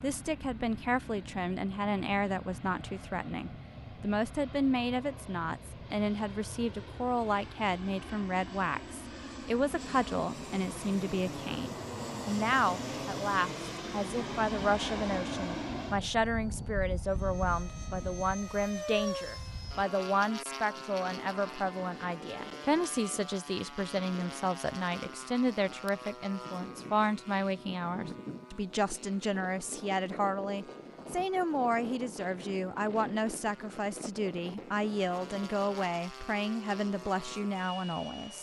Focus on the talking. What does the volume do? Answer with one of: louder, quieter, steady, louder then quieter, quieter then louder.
steady.